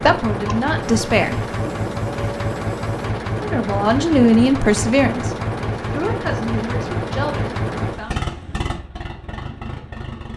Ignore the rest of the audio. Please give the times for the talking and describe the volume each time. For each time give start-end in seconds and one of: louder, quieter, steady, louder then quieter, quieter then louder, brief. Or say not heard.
0.0-1.4 brief
3.4-8.2 quieter.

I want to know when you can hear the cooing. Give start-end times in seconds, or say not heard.
not heard.